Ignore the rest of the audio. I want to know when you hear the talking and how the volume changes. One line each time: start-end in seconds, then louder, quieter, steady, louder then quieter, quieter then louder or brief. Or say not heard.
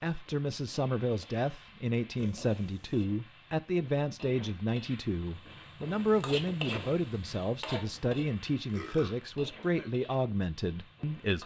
0.0-11.4 steady.